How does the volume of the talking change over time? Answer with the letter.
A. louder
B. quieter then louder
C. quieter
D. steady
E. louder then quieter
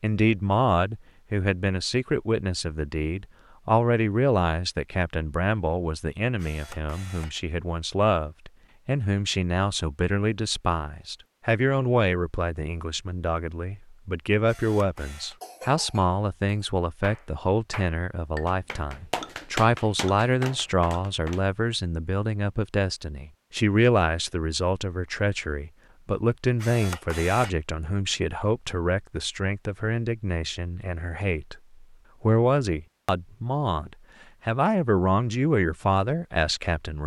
D.